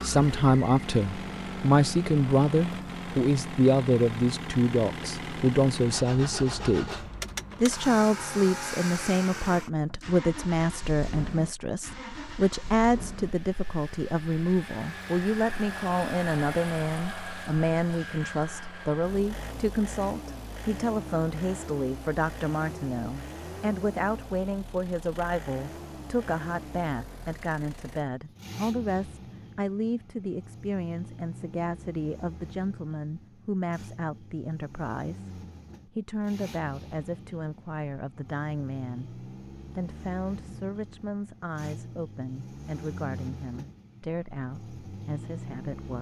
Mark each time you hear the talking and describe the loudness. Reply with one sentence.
You can hear the talking from 0.0 to 45.9 s, getting quieter.